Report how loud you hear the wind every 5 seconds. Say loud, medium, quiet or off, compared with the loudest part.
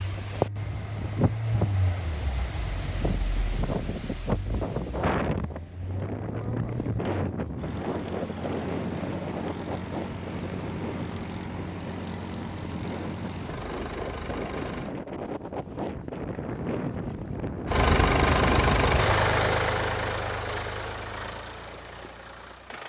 loud, loud, medium, loud, off.